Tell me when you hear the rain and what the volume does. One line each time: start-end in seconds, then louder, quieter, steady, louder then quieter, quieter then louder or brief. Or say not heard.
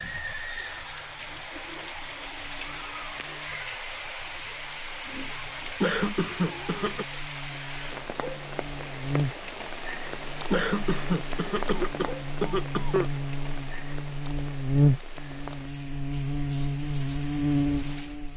0.0-18.3 quieter.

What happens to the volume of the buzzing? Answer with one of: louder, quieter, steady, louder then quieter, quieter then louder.
louder.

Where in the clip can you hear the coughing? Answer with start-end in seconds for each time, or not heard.
5.8-7.0, 10.5-13.1.